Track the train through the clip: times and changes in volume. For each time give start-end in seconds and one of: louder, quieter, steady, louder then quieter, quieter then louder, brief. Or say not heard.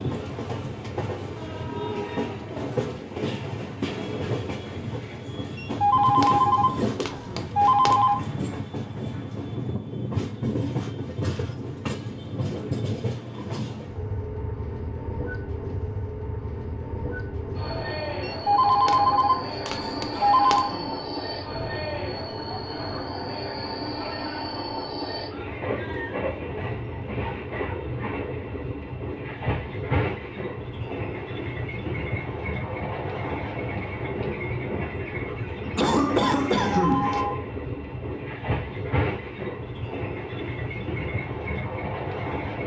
0.0-42.6 steady.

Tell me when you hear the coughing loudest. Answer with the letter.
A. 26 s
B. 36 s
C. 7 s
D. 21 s
B.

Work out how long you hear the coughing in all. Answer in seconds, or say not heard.
4 s.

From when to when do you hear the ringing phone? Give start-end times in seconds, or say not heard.
5.8-8.2, 18.4-20.8, 36.7-37.4.